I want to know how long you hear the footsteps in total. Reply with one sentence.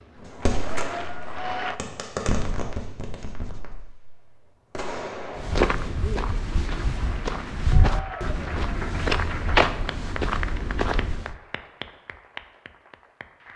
You can hear the footsteps for 6 seconds altogether.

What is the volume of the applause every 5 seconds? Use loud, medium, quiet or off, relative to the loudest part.
loud, medium, medium.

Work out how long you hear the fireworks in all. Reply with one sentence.
The fireworks can be heard for 5 seconds in total.